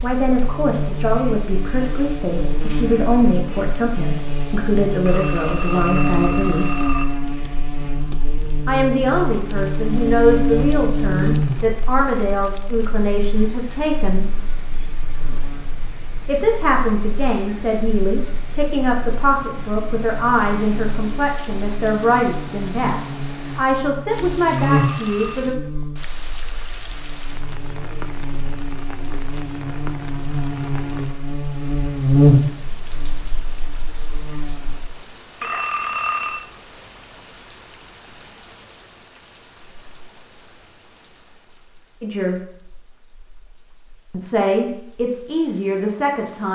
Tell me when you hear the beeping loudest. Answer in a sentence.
The volume of the beeping peaks at 36 seconds.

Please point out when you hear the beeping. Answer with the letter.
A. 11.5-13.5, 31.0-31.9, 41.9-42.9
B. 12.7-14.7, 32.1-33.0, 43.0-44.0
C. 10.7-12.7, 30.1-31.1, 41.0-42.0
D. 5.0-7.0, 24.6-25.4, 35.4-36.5
D.